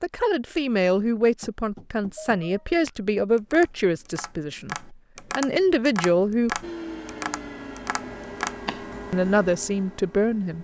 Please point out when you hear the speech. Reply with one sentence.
You can hear the speech from 0.0 to 6.6 s and from 9.1 to 10.5 s.